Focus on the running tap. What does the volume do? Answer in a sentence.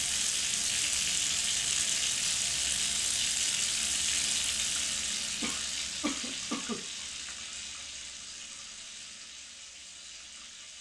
The loudness of the running tap goes down.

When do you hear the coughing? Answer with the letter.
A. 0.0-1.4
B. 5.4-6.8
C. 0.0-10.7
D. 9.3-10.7
B.